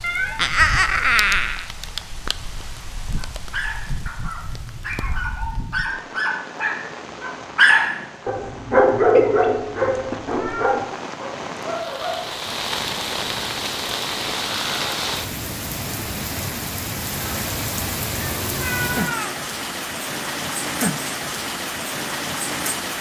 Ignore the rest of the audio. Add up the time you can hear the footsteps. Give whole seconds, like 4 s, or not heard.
not heard.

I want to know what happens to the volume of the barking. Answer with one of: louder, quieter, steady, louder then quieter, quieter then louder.
louder then quieter.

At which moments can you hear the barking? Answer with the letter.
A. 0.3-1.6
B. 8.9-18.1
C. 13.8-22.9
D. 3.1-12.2
D.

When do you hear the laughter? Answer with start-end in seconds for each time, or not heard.
0.3-1.6.